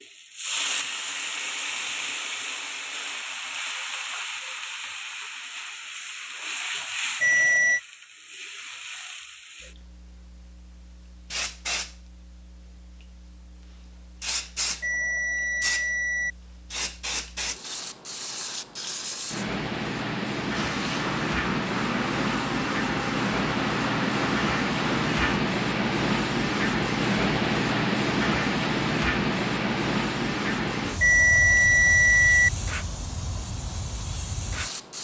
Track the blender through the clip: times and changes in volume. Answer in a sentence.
The blender can be heard from 20.5 to 25.4 s, at a steady volume.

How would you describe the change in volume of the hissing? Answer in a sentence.
The loudness of the hissing goes down, then up.